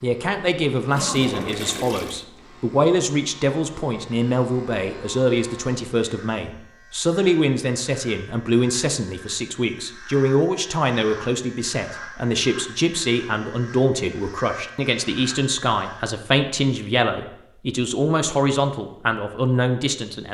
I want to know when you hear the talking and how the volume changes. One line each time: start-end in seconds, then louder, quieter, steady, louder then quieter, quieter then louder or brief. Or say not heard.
0.0-20.3 steady.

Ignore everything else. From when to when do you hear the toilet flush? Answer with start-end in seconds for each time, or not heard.
0.9-2.2.